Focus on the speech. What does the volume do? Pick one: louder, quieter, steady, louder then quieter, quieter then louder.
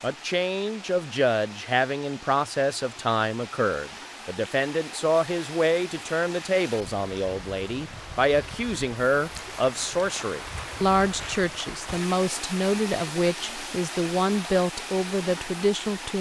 steady.